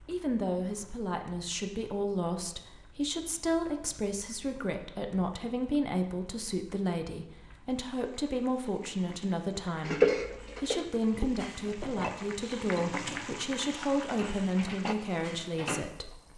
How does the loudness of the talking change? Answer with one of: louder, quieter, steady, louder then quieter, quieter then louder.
steady.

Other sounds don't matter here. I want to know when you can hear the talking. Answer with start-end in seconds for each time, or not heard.
0.1-16.3.